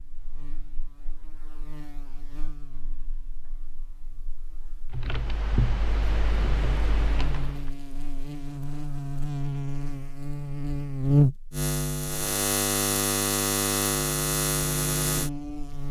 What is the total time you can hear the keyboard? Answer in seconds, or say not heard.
3 s.